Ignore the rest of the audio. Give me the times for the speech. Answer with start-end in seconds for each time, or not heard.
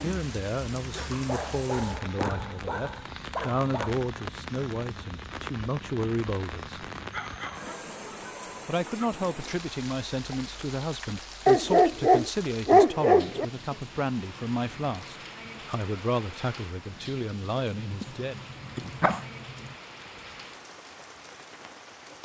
0.0-6.8, 8.7-18.4.